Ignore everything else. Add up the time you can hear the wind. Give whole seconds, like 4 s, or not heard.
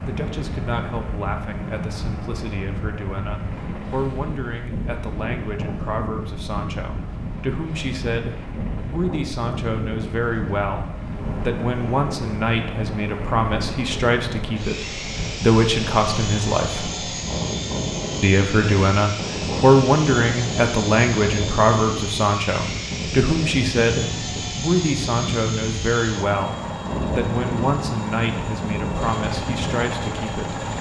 31 s.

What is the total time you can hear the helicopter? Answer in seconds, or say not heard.
31 s.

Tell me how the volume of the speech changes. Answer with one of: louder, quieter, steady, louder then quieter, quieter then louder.
louder then quieter.